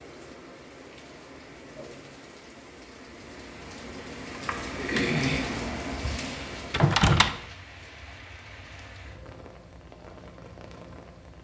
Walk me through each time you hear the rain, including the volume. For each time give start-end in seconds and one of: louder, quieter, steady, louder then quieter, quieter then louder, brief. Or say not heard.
0.0-11.3 louder then quieter.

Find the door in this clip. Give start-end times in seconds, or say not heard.
6.7-7.4.